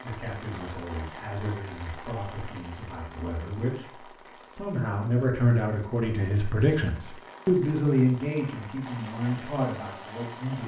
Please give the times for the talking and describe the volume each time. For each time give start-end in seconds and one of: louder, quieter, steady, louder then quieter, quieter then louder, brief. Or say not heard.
0.0-10.6 louder then quieter.